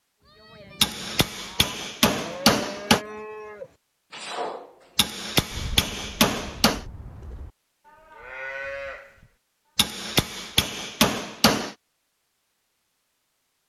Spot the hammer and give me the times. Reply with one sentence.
The hammer can be heard from 0.8 to 3.0 s, from 5.0 to 6.8 s and from 9.8 to 11.8 s.